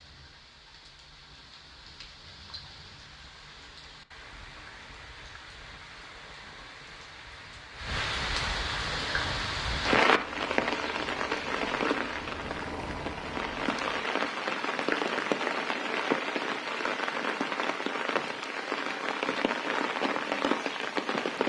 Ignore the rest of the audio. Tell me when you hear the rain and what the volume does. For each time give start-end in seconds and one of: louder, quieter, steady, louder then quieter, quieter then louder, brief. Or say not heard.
0.0-21.4 louder.